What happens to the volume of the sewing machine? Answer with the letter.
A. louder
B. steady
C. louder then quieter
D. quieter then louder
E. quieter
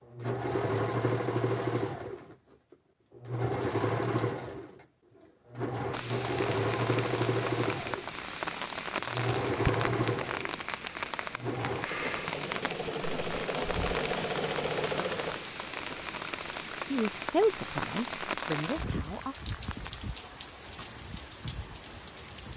B.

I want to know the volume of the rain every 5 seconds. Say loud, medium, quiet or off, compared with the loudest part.
off, loud, loud, loud, medium.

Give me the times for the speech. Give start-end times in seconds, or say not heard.
16.9-19.4.